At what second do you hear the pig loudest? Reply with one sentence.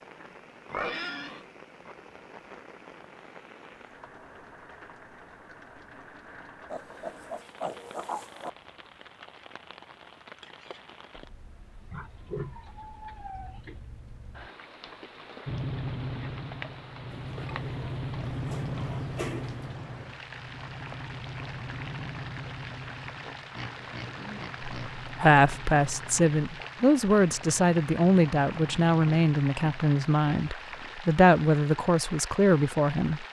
The volume of the pig peaks at 1 second.